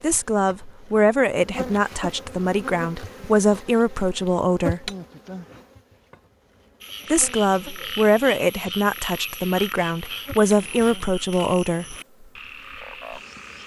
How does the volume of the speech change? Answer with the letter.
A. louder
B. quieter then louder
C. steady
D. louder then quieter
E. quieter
C.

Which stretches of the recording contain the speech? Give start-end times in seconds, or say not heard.
0.0-4.9, 7.1-11.9.